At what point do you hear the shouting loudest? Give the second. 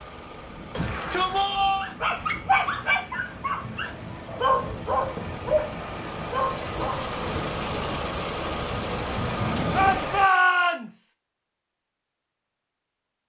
10 s.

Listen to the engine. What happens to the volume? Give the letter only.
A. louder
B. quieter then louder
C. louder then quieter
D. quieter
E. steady
A.